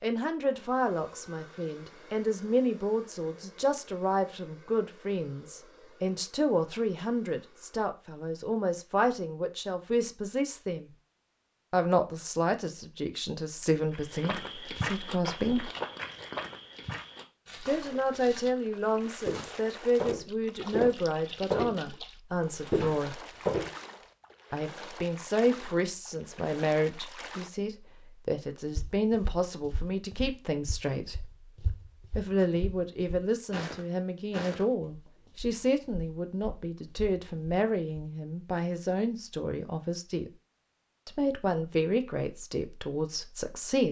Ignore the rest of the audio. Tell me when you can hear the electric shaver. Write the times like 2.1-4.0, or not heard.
not heard.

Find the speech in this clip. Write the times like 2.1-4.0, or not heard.
0.0-10.9, 11.7-15.7, 17.6-23.2, 24.5-31.2, 32.1-40.3, 41.0-43.8.